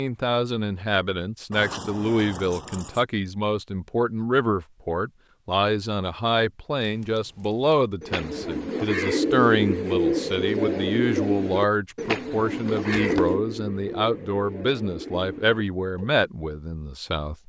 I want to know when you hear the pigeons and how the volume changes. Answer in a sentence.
You can hear the pigeons from 8.0 to 16.1 s, getting quieter.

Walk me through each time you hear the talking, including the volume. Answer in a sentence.
You can hear the talking from 0.0 to 17.4 s, at a steady volume.